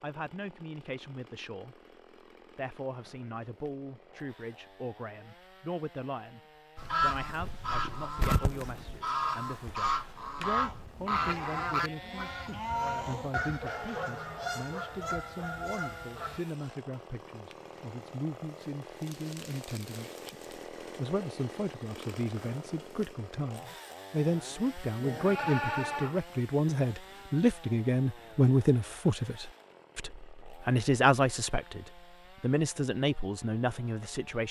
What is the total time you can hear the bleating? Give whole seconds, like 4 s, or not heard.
5 s.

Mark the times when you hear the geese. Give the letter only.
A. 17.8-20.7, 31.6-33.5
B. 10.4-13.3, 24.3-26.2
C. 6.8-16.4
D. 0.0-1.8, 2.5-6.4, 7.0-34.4
C.